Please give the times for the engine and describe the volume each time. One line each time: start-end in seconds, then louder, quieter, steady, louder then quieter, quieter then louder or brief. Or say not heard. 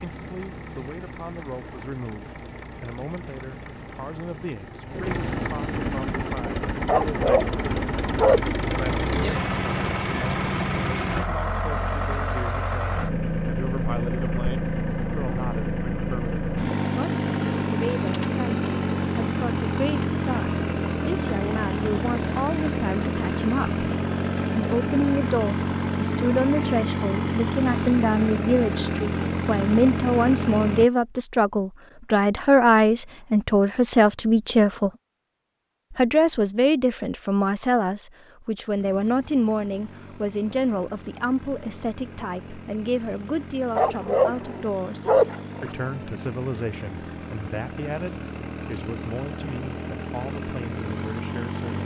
0.0-30.9 louder
38.8-51.8 louder.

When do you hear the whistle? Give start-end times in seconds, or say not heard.
not heard.